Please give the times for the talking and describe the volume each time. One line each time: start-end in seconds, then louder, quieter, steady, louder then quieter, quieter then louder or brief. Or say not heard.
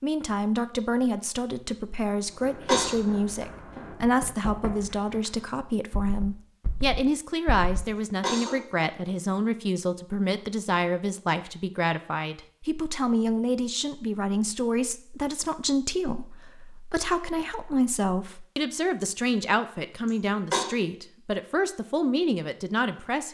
0.0-23.2 steady.